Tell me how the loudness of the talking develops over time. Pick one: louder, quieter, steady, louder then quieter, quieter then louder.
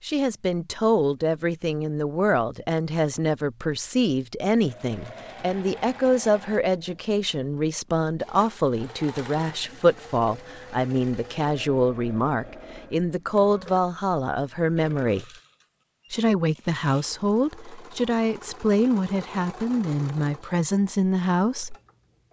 steady.